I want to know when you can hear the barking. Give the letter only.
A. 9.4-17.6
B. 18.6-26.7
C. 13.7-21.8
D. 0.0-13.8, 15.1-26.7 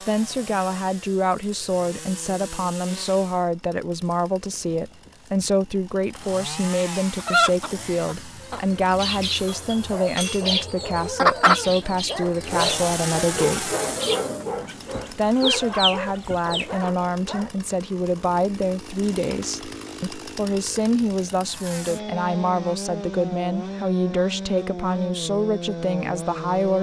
A.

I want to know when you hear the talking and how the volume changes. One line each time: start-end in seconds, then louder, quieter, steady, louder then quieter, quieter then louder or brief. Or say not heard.
0.0-13.8 steady
15.1-26.7 steady.